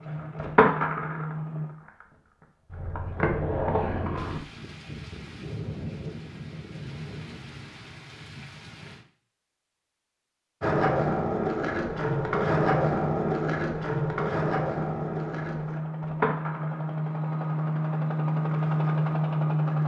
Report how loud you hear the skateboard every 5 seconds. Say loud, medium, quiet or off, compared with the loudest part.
loud, off, loud, medium.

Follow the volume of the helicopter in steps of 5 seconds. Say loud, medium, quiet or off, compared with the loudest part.
medium, off, medium, loud.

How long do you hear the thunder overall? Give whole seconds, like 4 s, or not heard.
5 s.